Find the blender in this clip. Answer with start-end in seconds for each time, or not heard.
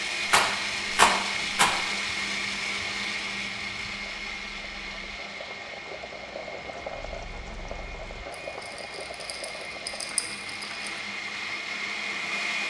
0.0-12.6.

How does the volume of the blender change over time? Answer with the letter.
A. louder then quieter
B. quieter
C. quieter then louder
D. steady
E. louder
C.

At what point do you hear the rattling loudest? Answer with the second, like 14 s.
1 s.